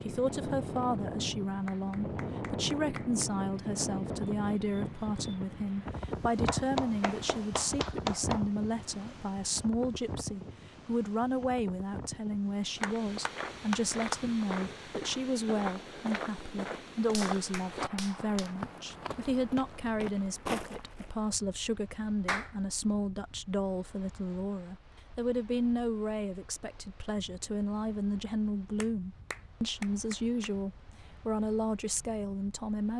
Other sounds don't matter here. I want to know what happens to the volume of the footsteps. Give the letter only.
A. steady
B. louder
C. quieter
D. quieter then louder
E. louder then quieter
A.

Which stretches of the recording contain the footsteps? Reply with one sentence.
The footsteps can be heard from 12.7 to 21.1 s.